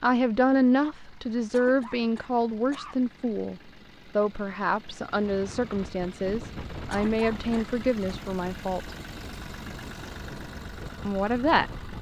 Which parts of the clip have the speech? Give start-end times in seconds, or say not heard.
0.0-8.9, 11.1-11.7.